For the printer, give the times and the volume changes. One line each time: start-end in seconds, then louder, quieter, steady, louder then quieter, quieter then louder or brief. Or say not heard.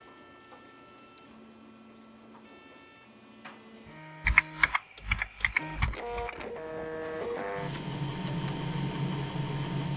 0.0-9.9 louder.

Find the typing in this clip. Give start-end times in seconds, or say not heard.
4.2-6.3.